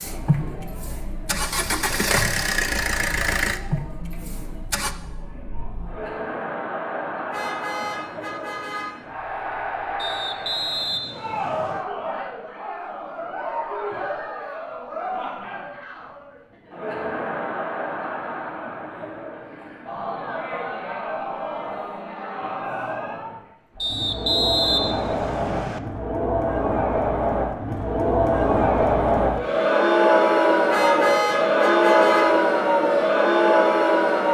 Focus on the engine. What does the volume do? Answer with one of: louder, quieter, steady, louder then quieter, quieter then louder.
louder then quieter.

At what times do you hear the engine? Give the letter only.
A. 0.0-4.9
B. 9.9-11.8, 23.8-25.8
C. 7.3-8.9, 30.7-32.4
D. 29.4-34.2
A.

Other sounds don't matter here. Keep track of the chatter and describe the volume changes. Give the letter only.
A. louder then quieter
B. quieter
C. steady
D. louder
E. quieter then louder
D.